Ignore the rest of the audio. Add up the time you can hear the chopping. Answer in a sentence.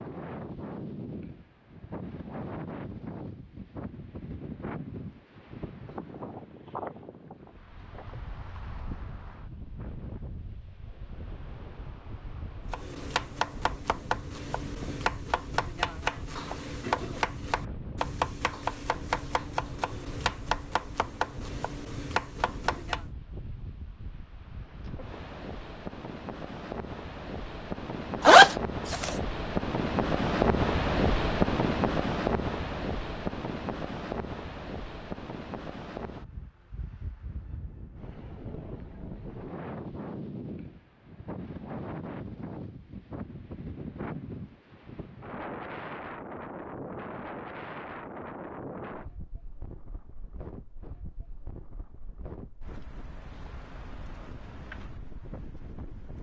You can hear the chopping for 10 seconds altogether.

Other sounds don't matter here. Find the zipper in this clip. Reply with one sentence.
The zipper can be heard from 28.2 to 29.1 s.